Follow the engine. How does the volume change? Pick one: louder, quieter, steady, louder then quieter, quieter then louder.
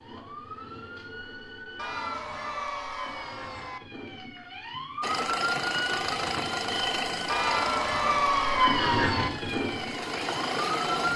quieter then louder.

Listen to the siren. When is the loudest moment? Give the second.
9 s.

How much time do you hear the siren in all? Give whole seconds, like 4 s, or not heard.
11 s.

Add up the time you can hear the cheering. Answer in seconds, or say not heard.
4 s.